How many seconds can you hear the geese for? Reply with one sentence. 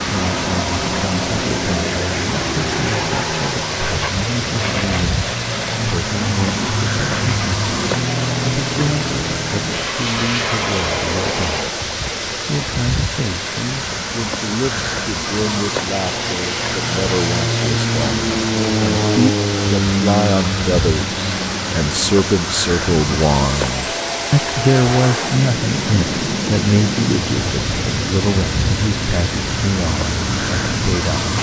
The geese can't be heard in this clip.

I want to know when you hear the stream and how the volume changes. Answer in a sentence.
You can hear the stream from 0.0 to 31.3 s, at a steady volume.